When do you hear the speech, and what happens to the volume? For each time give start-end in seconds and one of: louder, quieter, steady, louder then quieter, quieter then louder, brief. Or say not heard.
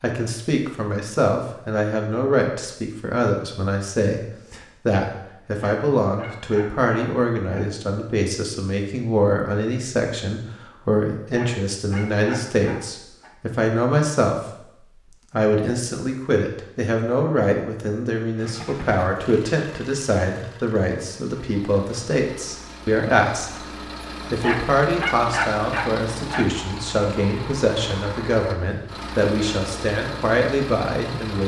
0.0-31.4 steady.